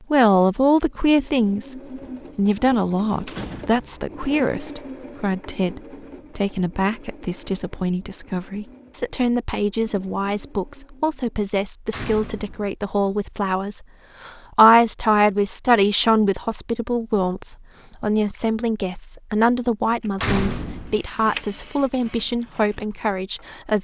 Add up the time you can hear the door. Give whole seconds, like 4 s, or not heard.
2 s.